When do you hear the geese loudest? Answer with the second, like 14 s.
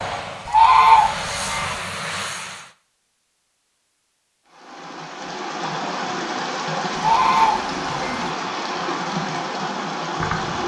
1 s.